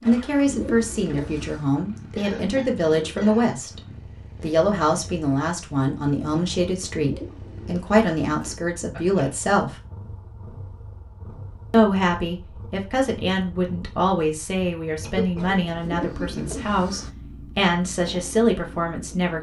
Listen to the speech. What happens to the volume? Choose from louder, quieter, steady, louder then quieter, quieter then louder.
steady.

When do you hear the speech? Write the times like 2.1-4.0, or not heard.
0.0-3.8, 4.4-9.8, 11.7-19.3.